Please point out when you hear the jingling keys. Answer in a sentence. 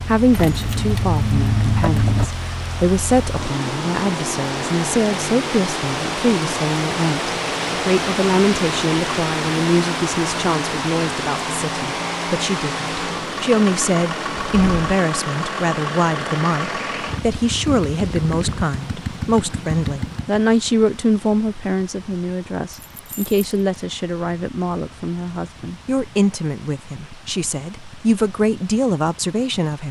The jingling keys can be heard from 0.3 to 2.2 s, from 14.5 to 15.1 s and from 22.9 to 23.4 s.